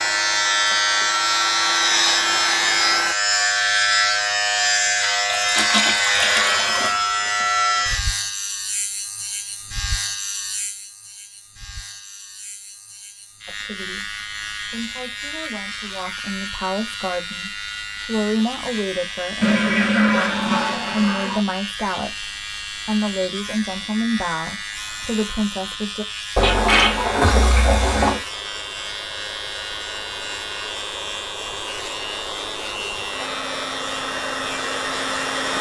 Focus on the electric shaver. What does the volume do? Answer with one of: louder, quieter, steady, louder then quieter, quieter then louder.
quieter.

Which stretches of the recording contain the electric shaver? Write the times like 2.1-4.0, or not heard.
0.0-35.5.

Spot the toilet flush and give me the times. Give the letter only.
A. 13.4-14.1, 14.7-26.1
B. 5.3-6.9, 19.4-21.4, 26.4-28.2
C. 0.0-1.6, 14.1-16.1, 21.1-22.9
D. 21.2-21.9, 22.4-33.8
B.